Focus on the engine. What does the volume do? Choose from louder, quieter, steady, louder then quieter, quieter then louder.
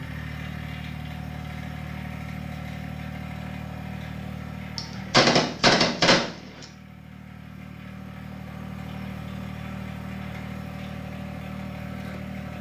quieter then louder.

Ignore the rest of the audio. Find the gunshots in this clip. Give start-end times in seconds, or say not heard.
4.8-6.7.